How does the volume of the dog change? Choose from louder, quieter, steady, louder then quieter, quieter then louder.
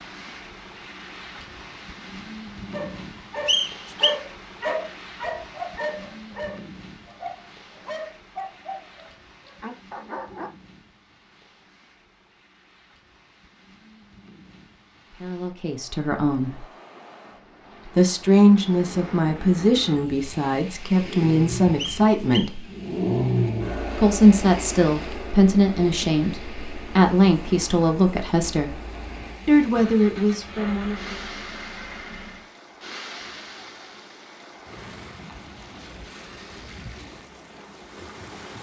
quieter.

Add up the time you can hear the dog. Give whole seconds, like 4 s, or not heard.
8 s.